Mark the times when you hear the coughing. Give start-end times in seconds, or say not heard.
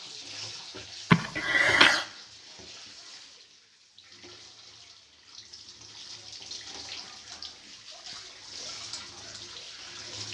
1.1-2.0.